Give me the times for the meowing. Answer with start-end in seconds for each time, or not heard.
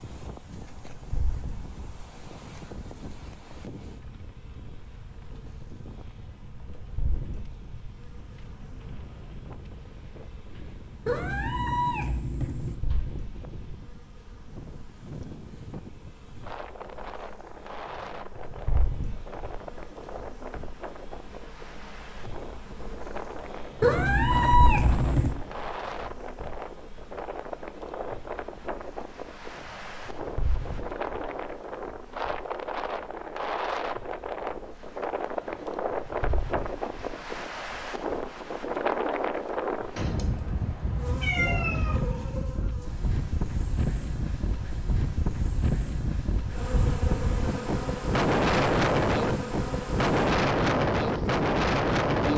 11.1-12.8, 23.8-25.4, 40.0-42.0.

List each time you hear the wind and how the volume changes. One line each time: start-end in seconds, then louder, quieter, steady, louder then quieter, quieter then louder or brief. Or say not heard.
0.0-52.3 louder.